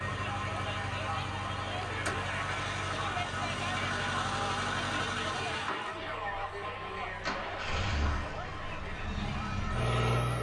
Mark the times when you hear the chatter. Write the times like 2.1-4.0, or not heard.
0.0-10.3.